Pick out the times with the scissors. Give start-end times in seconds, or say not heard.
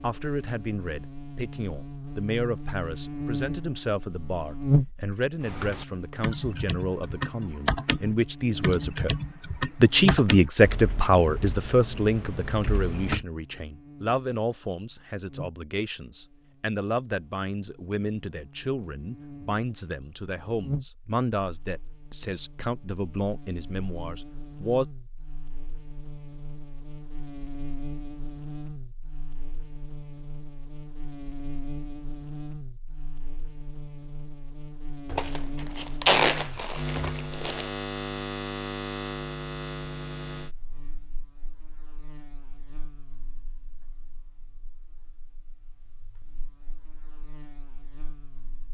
not heard.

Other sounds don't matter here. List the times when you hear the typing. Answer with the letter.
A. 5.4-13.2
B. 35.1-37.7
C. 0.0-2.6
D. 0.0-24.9
A.